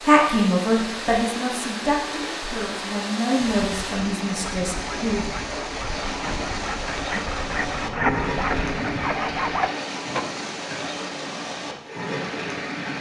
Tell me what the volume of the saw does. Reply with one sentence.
The volume of the saw goes up.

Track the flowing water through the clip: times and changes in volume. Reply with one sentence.
You can hear the flowing water from 0.0 to 12.9 s, at a steady volume.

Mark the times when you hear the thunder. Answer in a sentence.
You can hear the thunder from 7.5 to 9.0 s.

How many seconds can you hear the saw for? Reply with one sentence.
You can hear the saw for 7 seconds altogether.